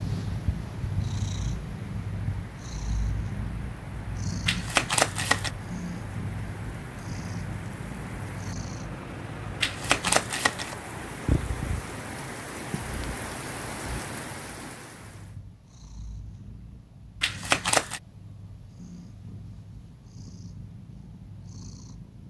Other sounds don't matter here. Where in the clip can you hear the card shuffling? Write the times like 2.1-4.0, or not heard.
4.5-5.5, 9.6-10.8, 17.2-18.0.